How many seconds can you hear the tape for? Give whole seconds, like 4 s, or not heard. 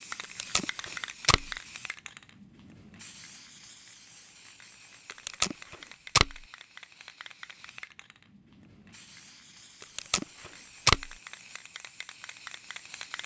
4 s.